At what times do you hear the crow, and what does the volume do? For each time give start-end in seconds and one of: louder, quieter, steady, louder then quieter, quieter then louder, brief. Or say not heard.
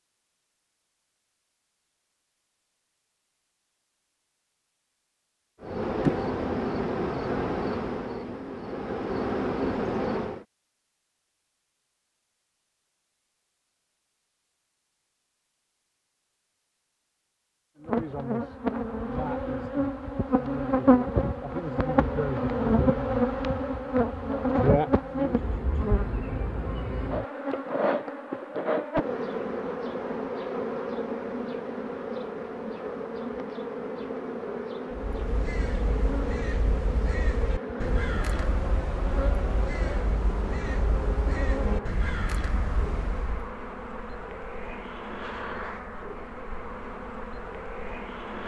34.9-43.5 steady.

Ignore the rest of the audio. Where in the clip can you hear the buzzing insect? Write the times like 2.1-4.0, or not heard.
5.6-10.4, 17.8-48.4.